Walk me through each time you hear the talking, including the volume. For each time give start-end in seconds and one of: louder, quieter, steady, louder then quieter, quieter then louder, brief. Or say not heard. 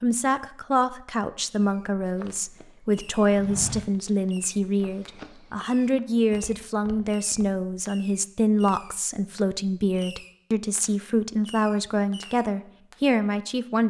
0.0-13.8 steady.